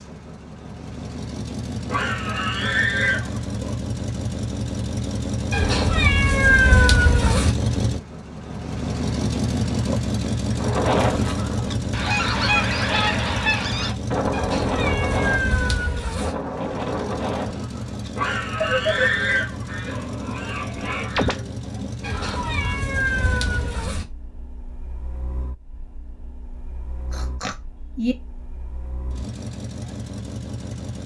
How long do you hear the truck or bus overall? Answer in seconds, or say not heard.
31 s.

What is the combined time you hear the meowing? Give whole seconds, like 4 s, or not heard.
6 s.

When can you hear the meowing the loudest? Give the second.
7 s.